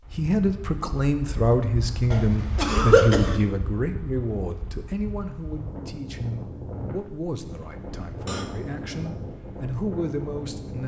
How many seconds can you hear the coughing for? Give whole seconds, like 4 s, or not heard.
2 s.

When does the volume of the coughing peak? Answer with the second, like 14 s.
3 s.